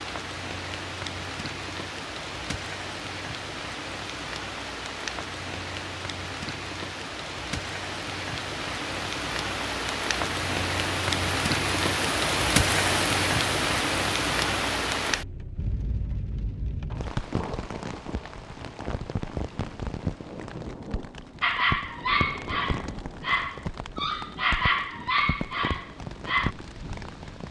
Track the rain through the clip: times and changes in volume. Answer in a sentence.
You can hear the rain from 0.0 to 27.4 s, getting louder then quieter.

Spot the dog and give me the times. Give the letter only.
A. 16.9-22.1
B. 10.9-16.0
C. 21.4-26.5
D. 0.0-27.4
C.